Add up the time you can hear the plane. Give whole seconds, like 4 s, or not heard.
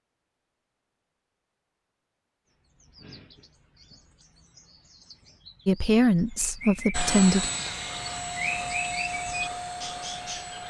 4 s.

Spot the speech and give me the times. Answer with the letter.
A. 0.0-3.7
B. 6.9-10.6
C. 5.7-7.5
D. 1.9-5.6
C.